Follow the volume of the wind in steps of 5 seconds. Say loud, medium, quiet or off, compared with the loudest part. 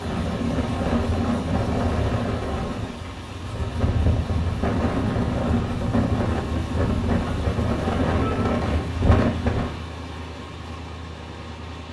loud, loud, off.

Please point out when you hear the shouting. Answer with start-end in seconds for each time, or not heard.
8.2-8.6.